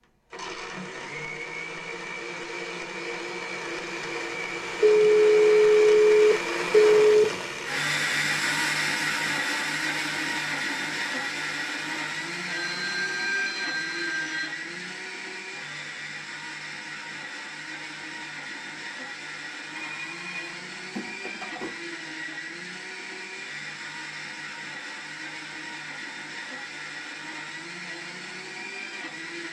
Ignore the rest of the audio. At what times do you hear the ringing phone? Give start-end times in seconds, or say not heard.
4.8-7.2, 12.4-14.5, 19.8-21.8.